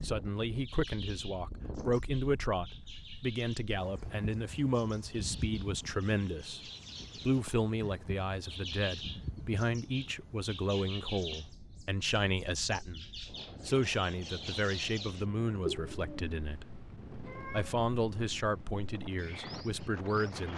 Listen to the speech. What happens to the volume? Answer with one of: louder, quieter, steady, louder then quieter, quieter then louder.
steady.